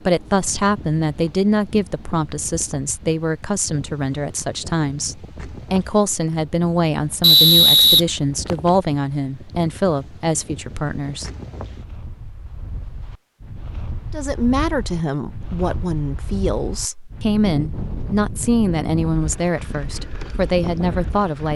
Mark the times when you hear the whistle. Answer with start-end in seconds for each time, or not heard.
7.2-8.7.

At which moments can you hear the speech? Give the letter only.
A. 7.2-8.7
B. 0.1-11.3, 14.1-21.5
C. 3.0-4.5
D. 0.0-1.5
B.